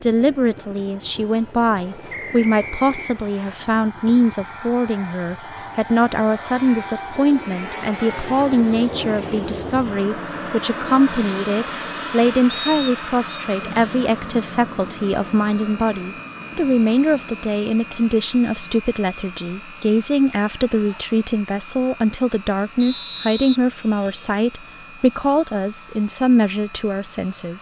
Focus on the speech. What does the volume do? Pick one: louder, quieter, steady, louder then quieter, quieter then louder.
steady.